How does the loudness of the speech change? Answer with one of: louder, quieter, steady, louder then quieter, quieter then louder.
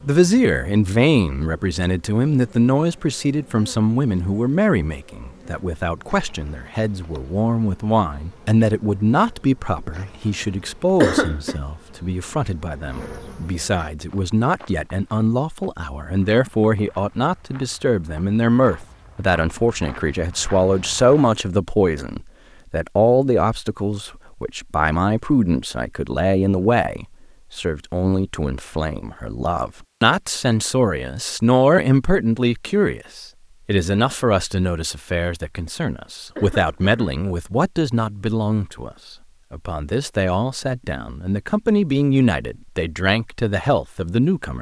steady.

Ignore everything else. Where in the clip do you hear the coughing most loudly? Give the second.
11 s.